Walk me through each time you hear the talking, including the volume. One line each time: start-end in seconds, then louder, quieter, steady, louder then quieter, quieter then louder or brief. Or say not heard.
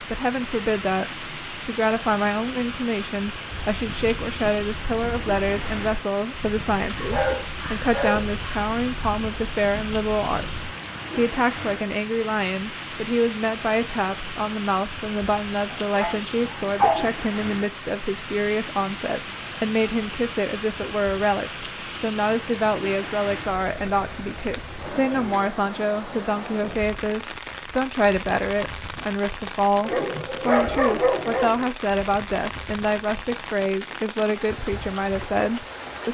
0.0-36.0 steady.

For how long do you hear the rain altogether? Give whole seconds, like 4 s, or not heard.
36 s.